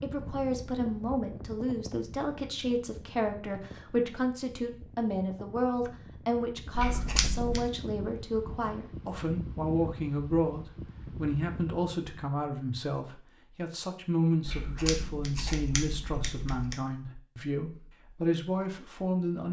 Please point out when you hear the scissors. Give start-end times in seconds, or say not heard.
6.8-7.7, 14.4-16.8.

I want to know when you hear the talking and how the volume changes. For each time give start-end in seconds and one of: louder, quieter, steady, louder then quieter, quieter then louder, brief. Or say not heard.
0.0-19.4 steady.